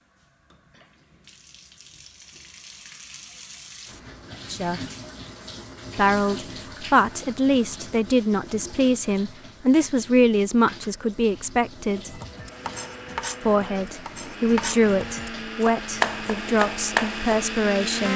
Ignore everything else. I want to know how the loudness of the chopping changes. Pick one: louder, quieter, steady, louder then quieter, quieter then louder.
quieter then louder.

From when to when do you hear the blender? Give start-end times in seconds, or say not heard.
12.2-18.1.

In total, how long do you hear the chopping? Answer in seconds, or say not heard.
5 s.